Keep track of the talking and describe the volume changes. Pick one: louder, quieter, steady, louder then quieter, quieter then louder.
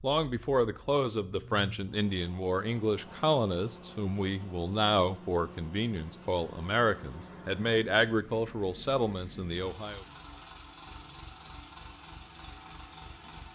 steady.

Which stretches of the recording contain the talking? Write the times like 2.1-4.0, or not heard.
0.0-10.1.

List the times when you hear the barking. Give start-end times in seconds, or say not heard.
not heard.